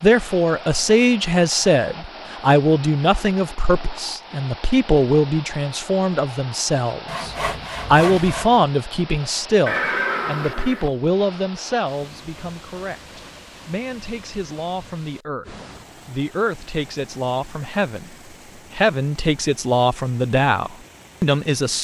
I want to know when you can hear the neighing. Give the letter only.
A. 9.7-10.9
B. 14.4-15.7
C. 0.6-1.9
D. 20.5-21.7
A.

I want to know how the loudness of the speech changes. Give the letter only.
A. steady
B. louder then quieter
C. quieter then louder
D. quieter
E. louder
C.